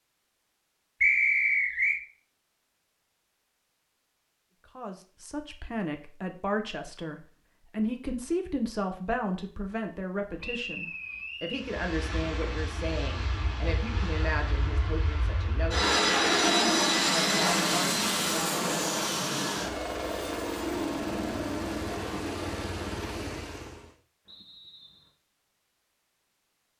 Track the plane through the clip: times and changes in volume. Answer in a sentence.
The plane can be heard from 11.5 to 23.9 s, getting louder then quieter.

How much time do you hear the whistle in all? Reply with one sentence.
The whistle can be heard for 3 seconds in total.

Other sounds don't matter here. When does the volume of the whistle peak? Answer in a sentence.
The volume of the whistle peaks at 1 second.